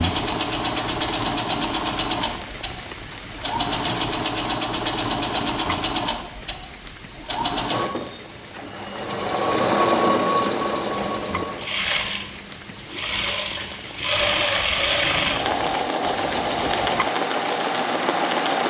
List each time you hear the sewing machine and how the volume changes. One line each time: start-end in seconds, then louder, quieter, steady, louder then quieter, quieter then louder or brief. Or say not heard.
0.0-18.6 steady.